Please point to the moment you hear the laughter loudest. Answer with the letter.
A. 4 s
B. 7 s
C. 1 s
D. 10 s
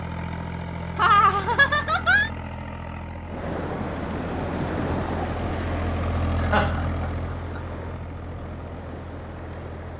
C.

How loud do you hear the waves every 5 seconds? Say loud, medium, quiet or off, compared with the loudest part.
loud, medium.